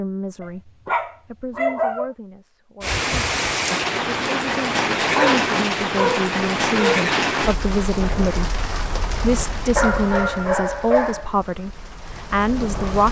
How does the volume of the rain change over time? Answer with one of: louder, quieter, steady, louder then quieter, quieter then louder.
quieter.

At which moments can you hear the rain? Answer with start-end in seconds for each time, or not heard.
2.8-13.0.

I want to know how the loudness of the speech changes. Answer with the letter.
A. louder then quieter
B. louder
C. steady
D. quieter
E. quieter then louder
B.